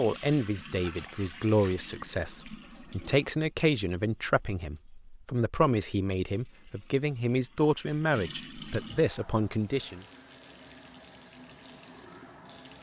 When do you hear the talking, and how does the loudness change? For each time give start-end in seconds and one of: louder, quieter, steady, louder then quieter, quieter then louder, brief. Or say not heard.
0.0-10.0 steady.